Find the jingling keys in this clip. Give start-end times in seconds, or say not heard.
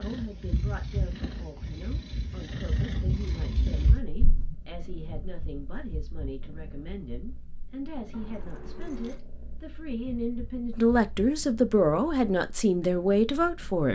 3.0-3.8, 8.1-9.2.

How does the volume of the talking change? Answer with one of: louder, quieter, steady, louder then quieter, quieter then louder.
louder.